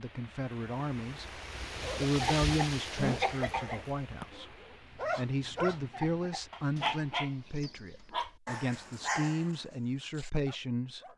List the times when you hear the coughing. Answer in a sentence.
The coughing can be heard from 2.2 to 3.8 s and from 5.9 to 6.5 s.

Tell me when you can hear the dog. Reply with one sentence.
You can hear the dog from 5.0 to 11.1 s.